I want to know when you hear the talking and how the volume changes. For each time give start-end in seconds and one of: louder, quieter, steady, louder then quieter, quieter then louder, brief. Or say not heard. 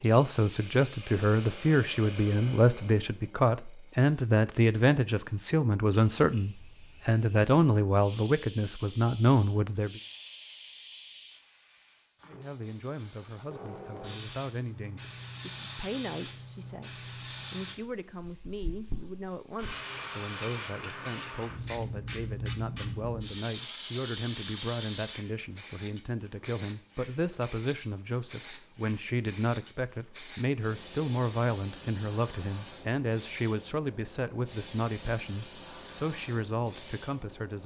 0.0-10.0 steady
12.2-37.6 louder.